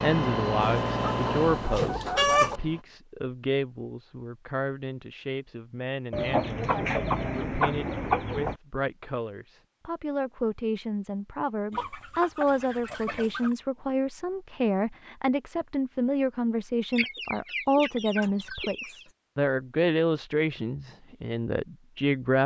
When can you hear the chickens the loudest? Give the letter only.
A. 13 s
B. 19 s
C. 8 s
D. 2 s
D.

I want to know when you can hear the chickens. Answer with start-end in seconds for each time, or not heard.
0.6-2.6, 6.1-8.6, 11.7-13.6, 16.9-19.1.